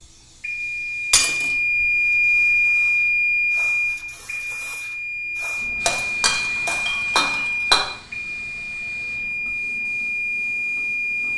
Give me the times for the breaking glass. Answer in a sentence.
You can hear the breaking glass from 1.1 to 1.6 s and from 5.8 to 7.8 s.